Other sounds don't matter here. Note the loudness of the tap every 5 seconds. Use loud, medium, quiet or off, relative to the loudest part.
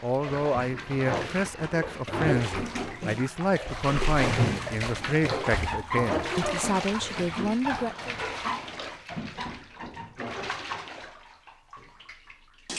loud, loud, medium.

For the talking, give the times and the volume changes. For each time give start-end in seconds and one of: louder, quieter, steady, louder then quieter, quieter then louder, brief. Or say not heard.
0.0-8.2 steady.